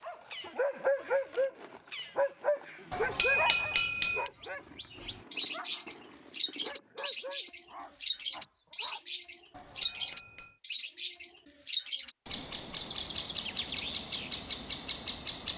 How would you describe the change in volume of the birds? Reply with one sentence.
The volume of the birds goes up.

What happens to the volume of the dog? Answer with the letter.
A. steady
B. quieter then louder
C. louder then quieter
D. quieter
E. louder
D.